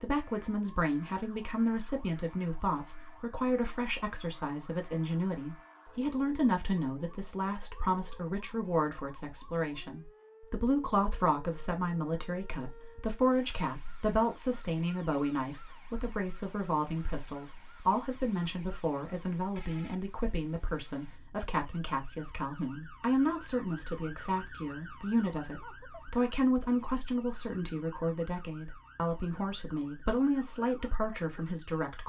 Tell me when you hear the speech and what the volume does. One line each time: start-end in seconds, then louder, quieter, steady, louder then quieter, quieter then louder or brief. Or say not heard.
0.0-32.0 steady.